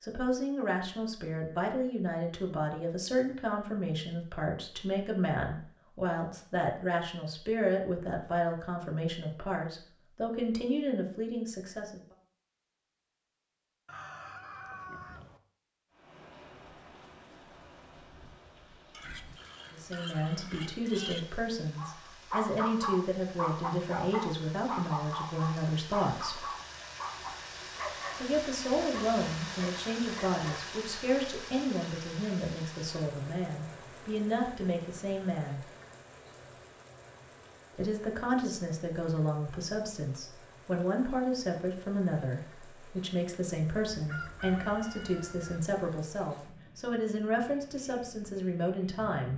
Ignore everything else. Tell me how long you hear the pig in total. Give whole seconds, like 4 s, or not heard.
2 s.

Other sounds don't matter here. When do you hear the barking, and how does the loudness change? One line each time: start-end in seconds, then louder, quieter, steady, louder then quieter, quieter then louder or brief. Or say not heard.
21.8-28.2 quieter
28.9-30.6 brief.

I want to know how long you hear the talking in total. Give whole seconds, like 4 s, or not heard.
38 s.